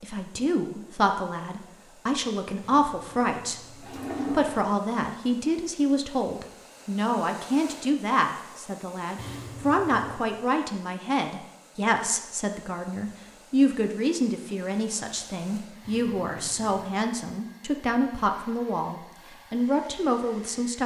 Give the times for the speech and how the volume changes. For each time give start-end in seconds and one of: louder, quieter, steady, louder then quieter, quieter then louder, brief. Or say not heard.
0.0-20.8 steady.